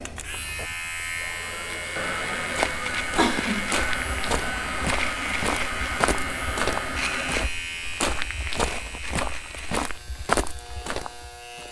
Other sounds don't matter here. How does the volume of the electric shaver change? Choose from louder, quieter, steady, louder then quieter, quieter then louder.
quieter.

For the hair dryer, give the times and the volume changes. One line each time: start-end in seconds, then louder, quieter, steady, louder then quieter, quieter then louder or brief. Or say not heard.
0.0-7.5 louder.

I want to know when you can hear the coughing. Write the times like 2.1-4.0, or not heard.
2.8-3.8.